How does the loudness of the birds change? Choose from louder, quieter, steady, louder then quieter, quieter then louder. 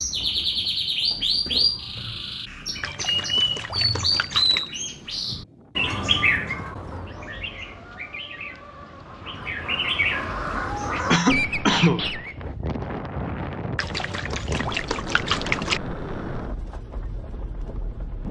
quieter then louder.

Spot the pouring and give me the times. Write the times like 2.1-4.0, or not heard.
2.8-4.7, 13.8-15.8.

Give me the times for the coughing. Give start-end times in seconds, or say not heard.
11.1-12.1.